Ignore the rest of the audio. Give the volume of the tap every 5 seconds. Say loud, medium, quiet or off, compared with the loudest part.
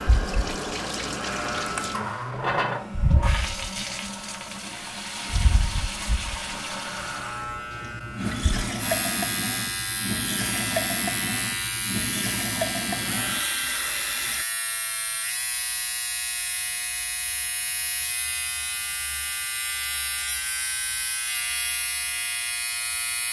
loud, loud, loud, off, off.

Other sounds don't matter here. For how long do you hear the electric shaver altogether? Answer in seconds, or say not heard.
23 s.